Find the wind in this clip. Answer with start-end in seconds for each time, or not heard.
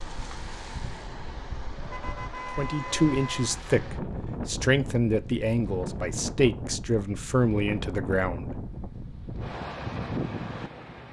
0.0-11.0.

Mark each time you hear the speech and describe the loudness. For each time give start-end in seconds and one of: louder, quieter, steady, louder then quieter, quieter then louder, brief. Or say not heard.
2.5-8.5 steady.